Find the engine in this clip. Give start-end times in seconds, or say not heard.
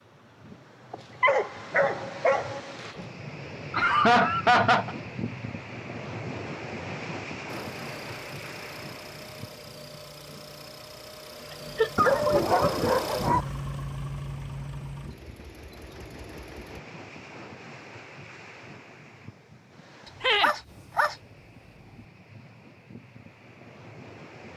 7.5-16.8.